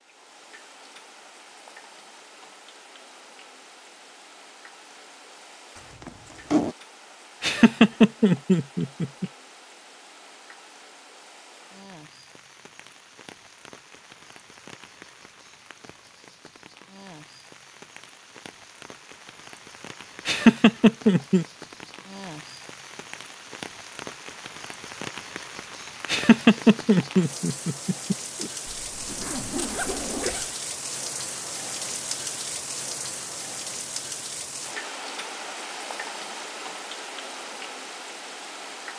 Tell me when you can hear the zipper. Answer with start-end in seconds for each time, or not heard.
5.8-6.8, 28.6-30.6.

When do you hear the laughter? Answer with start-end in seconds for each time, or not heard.
7.4-9.2, 20.2-21.4, 26.1-28.5.